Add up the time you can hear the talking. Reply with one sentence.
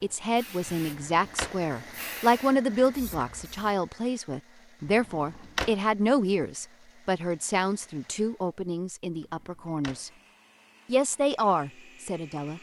The talking can be heard for 12 seconds in total.